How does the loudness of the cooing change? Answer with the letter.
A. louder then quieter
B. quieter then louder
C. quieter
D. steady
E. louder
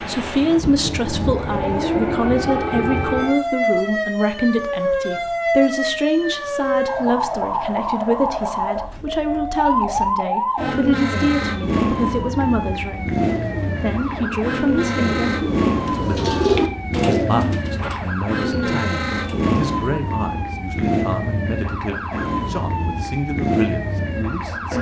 A.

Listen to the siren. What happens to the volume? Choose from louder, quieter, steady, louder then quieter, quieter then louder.
steady.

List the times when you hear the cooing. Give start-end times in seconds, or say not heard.
13.2-19.4.